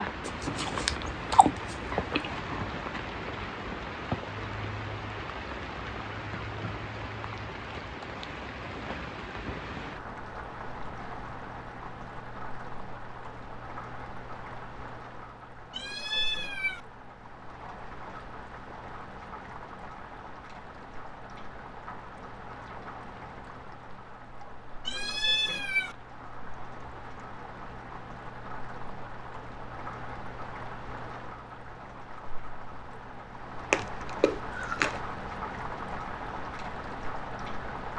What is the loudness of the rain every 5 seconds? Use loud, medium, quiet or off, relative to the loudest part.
loud, loud, medium, medium, medium, medium, medium, loud.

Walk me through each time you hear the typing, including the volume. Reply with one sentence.
You can't hear the typing here.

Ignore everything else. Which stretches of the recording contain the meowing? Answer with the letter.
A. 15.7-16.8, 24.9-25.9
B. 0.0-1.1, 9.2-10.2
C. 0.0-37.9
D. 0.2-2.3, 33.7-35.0
A.